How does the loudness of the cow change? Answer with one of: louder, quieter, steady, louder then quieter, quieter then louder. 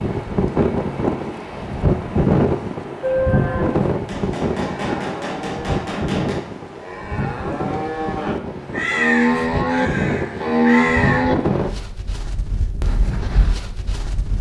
louder.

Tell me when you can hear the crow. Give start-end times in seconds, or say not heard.
8.7-11.3.